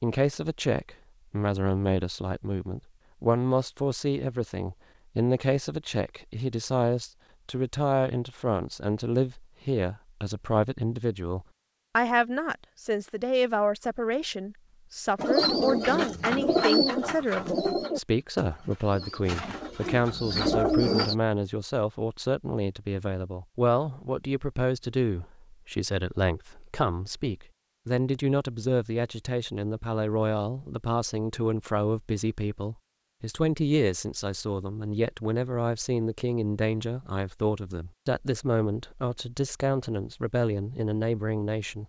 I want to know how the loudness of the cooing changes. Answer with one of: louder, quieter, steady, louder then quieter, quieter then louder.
quieter then louder.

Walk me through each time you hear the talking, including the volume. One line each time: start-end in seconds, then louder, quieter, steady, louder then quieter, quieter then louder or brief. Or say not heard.
0.0-41.8 steady.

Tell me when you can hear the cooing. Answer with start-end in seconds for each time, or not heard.
15.2-21.1.